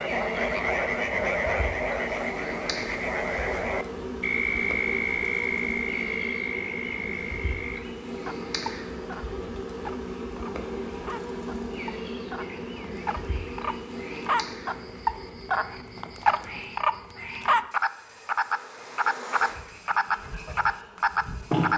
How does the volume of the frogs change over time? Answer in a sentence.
The loudness of the frogs goes down, then up.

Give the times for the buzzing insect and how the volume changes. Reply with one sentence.
The buzzing insect can be heard from 0.0 to 21.7 s, getting quieter.